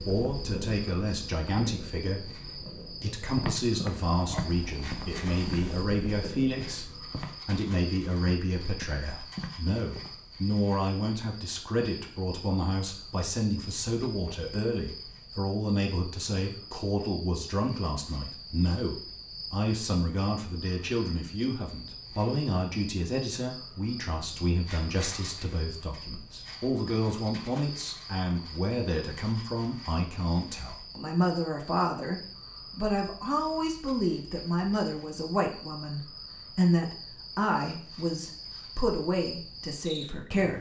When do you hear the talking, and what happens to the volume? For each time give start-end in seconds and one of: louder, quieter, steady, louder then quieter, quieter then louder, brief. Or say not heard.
0.1-40.5 steady.